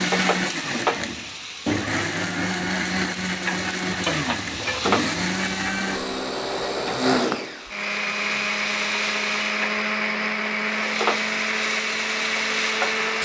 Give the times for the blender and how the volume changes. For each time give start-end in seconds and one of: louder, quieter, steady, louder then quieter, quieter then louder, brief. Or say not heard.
0.0-13.2 steady.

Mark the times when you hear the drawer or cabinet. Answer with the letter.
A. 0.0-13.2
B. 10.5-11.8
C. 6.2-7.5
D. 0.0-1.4
C.